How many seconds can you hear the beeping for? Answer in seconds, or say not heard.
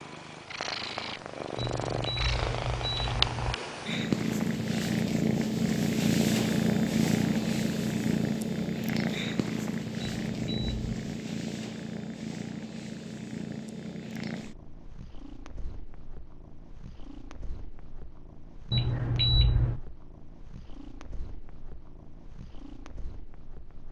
4 s.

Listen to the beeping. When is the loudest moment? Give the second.
19 s.